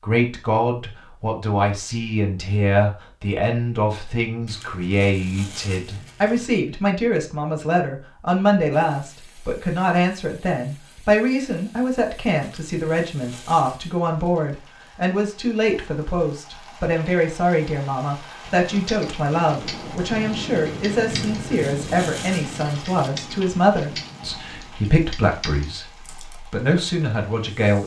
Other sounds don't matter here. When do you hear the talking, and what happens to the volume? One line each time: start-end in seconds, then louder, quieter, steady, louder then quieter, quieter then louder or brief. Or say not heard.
0.0-27.8 steady.